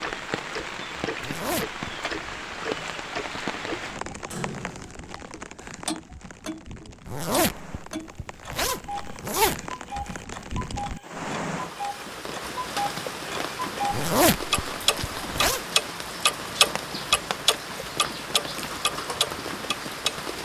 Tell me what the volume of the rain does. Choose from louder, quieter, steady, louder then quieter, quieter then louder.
quieter then louder.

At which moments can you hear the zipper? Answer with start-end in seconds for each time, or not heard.
1.1-1.8, 7.0-9.6, 13.9-15.6.